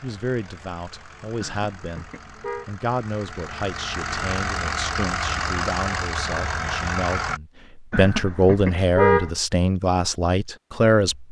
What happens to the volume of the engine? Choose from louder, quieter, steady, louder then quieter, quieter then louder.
louder.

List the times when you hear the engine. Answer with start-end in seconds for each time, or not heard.
0.0-7.4.